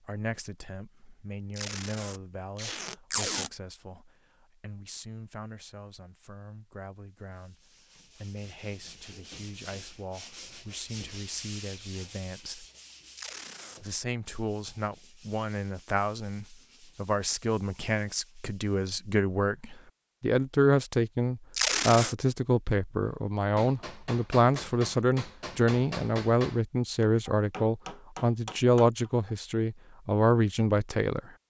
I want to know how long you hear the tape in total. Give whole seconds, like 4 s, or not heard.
3 s.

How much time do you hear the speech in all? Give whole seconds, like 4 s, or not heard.
30 s.